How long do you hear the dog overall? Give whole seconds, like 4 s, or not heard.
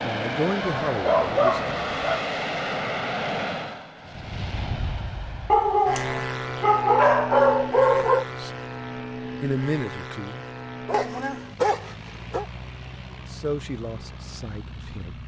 6 s.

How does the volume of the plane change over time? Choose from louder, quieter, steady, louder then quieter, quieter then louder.
quieter.